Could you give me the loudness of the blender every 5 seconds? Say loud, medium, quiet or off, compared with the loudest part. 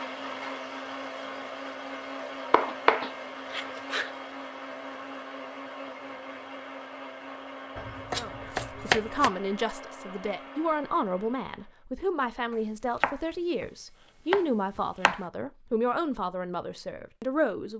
loud, loud, medium, off.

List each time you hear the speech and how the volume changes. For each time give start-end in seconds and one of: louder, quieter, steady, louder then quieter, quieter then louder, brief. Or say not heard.
8.2-17.7 steady.